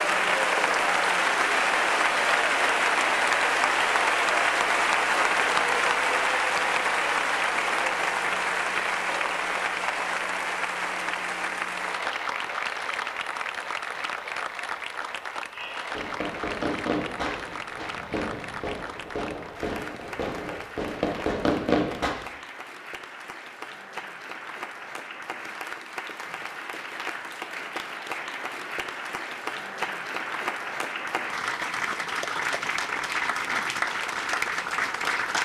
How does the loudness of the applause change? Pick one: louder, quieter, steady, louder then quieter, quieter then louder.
quieter then louder.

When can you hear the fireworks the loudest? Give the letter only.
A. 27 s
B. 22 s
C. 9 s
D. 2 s
B.